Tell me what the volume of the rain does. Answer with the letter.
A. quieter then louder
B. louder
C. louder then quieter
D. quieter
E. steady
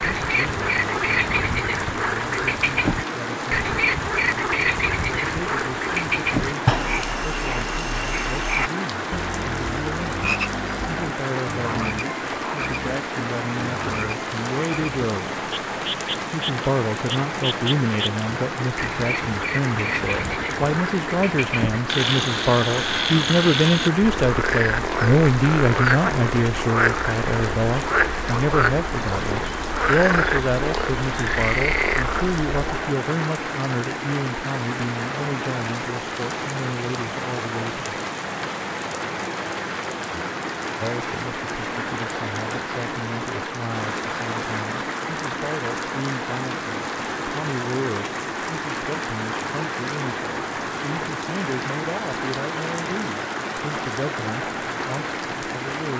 E.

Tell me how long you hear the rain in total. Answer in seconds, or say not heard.
56 s.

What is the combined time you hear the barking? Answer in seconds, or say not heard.
not heard.